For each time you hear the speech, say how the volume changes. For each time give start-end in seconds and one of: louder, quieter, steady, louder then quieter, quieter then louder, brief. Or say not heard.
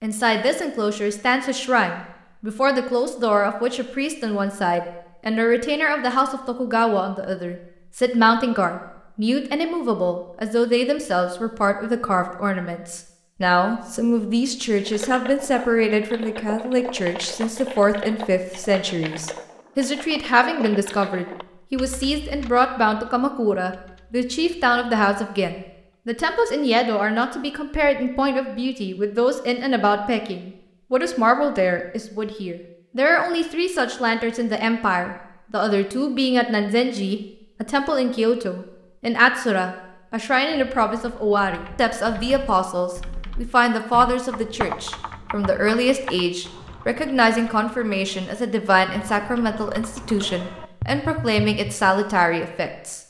0.0-53.0 steady.